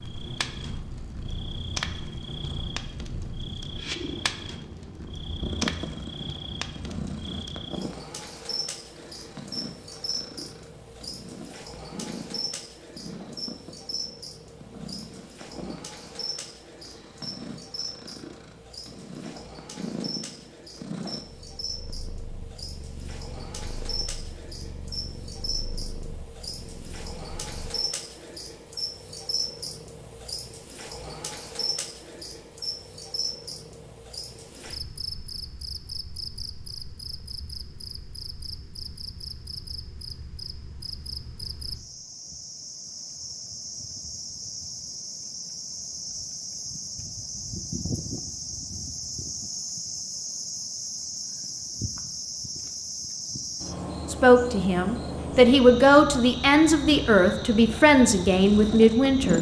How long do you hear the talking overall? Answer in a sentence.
The talking can be heard for 5 seconds in total.